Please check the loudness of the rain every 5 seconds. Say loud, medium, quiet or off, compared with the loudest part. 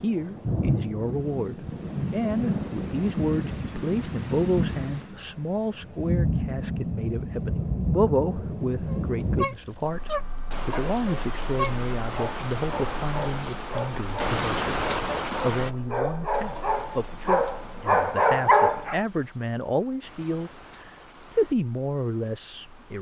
loud, loud, loud, medium, quiet.